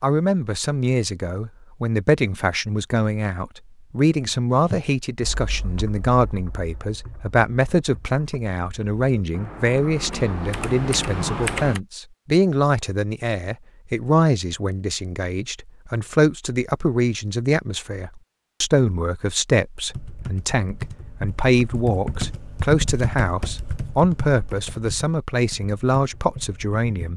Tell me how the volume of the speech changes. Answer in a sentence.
The volume of the speech stays about the same.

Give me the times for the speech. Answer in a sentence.
You can hear the speech from 0.0 to 27.1 s.